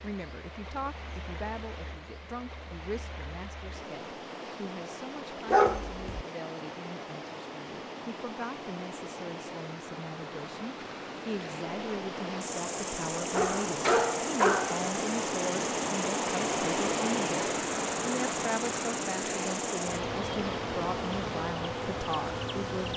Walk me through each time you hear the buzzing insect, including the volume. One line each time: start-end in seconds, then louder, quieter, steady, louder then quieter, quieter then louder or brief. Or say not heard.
12.4-22.9 steady.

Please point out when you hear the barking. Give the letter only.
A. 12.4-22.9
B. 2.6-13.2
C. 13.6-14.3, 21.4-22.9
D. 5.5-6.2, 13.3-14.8
D.